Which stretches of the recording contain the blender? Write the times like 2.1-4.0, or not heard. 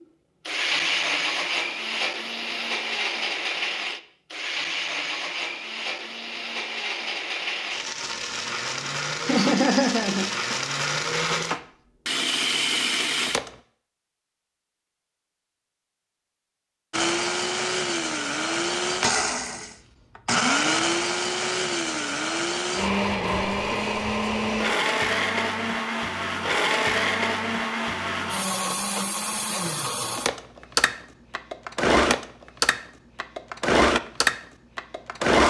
0.5-13.5, 16.9-35.4.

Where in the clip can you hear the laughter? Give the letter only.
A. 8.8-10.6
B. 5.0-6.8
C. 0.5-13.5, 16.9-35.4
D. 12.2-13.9
A.